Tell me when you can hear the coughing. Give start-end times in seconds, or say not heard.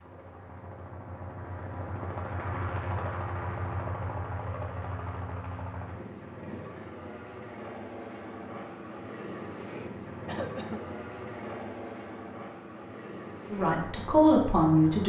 10.2-10.8.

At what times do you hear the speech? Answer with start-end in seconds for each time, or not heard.
13.5-15.0.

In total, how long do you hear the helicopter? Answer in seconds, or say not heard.
15 s.